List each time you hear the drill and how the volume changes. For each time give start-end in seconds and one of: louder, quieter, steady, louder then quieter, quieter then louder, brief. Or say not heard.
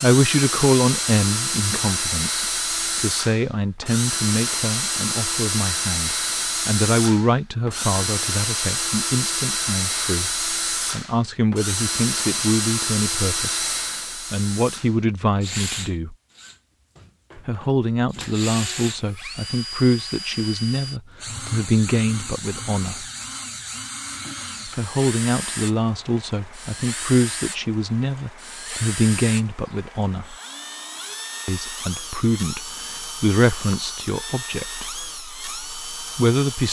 0.0-36.6 quieter.